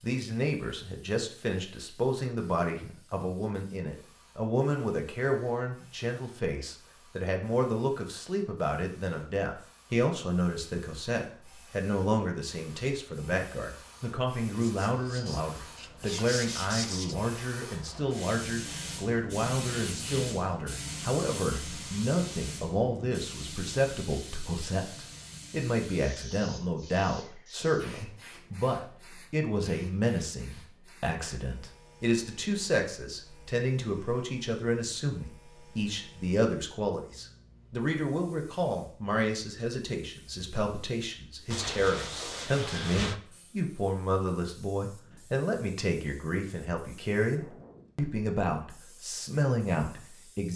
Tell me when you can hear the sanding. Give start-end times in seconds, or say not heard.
14.6-17.1, 41.5-43.2.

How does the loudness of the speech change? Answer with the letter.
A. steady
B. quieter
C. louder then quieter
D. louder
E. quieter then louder
A.